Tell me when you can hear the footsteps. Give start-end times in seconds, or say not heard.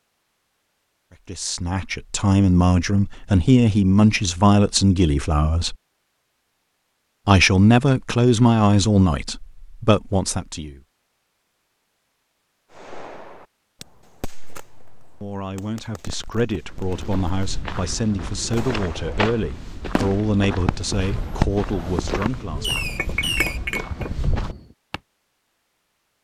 16.6-25.0.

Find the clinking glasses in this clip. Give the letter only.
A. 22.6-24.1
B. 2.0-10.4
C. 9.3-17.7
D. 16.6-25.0
A.